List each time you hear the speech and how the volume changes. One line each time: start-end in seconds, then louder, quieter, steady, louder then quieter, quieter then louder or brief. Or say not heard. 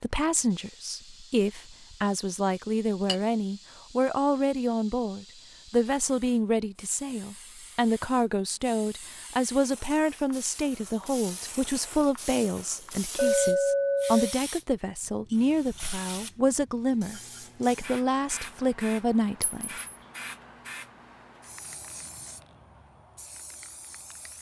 0.0-19.8 steady.